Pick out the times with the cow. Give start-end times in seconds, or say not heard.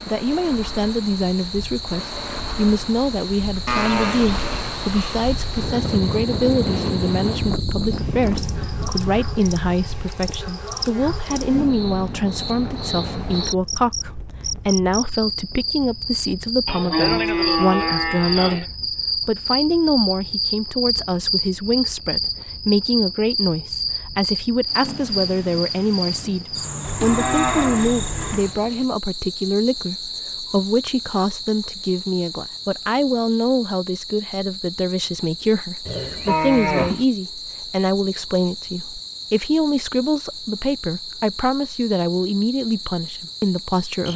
3.6-5.3, 16.6-18.6, 26.8-28.6, 35.9-37.0.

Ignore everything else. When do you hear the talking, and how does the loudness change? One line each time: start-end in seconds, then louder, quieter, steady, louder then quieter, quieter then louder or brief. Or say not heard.
0.1-44.1 steady.